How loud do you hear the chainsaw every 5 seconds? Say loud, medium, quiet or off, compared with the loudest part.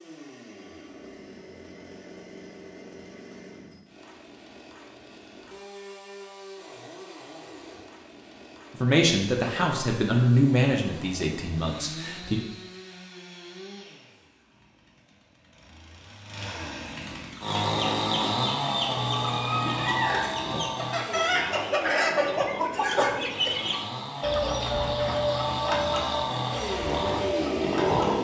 quiet, quiet, quiet, loud, medium, loud.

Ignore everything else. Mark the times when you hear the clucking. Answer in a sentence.
You can hear the clucking from 17.3 to 28.1 s.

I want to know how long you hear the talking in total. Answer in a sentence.
You can hear the talking for 4 seconds altogether.